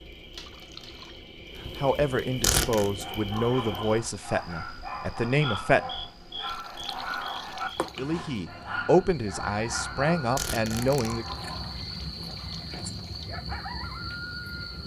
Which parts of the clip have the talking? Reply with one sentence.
The talking can be heard from 1.8 to 5.9 s and from 8.0 to 11.2 s.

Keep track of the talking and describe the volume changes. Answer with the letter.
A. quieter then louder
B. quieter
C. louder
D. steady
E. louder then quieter
D.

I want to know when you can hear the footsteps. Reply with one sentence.
The footsteps can't be heard in this clip.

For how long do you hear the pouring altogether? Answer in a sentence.
You can hear the pouring for 5 seconds altogether.